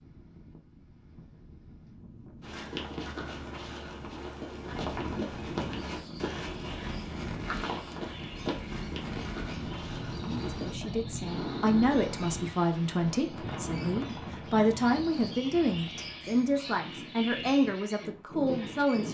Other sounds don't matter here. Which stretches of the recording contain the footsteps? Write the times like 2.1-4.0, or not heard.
2.4-10.8.